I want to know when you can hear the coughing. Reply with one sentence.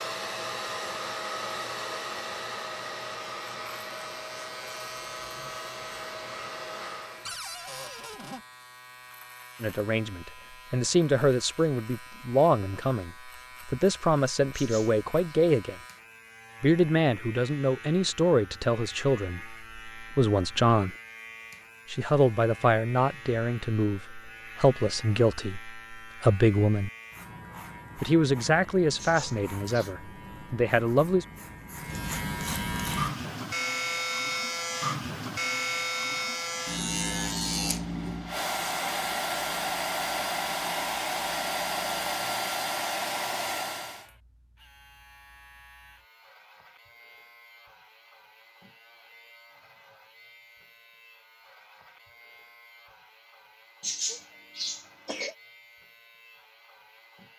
The coughing can be heard from 14.5 to 15.3 s, from 28.9 to 29.9 s and from 53.8 to 55.4 s.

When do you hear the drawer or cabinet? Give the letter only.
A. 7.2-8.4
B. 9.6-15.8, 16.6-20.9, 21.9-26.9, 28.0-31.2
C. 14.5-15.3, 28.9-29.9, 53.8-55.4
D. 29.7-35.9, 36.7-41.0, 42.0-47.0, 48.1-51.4
A.